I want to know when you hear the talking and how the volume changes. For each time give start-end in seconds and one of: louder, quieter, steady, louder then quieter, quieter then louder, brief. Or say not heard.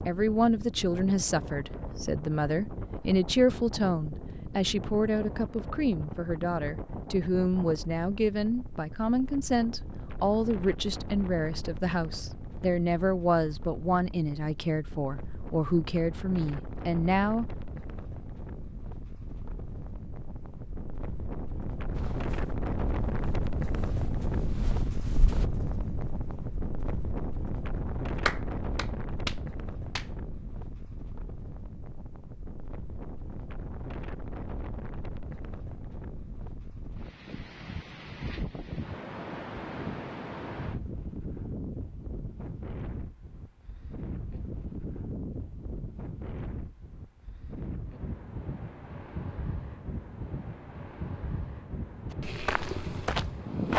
0.1-17.6 steady.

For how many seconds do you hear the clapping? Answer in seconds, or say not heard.
2 s.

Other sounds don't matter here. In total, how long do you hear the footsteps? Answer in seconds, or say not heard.
5 s.